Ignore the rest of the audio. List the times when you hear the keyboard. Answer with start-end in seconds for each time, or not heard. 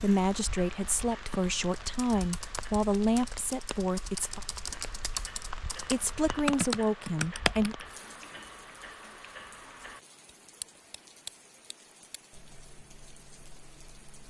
1.9-7.8.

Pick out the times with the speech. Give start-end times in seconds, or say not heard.
0.0-4.4, 5.9-7.8.